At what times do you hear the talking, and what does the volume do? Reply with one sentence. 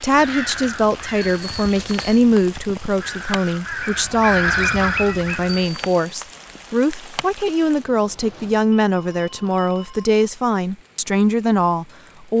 You can hear the talking from 0.0 to 12.3 s, at a steady volume.